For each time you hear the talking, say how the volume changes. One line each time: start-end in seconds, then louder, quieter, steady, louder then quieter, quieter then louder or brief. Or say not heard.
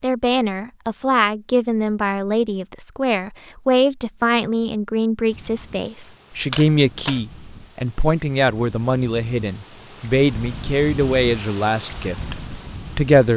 0.0-13.3 steady.